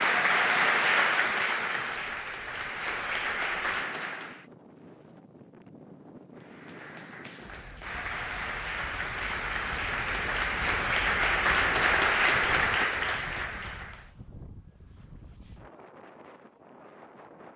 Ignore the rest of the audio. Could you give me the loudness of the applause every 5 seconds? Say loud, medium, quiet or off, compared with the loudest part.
loud, medium, loud, off.